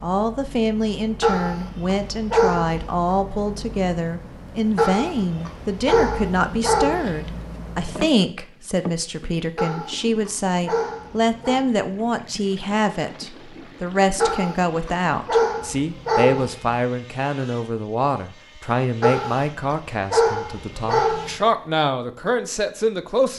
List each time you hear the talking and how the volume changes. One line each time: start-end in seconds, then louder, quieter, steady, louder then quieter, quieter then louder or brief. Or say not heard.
0.0-23.3 steady.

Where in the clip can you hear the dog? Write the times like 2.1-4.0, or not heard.
1.2-3.0, 4.8-7.3, 9.6-11.6, 14.2-16.8, 19.0-21.4.